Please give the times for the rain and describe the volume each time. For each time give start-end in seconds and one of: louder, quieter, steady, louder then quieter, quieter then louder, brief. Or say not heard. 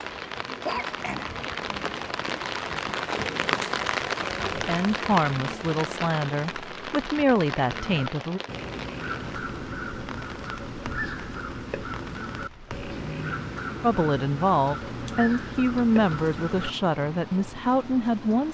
0.0-18.4 quieter.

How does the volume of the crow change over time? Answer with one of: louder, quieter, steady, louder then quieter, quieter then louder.
steady.